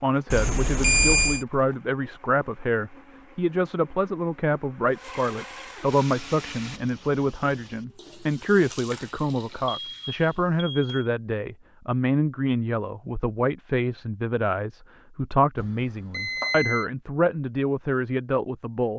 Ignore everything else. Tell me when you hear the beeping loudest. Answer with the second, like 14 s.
1 s.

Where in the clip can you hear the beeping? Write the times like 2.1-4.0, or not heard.
0.3-1.4, 8.7-11.1, 15.6-16.9.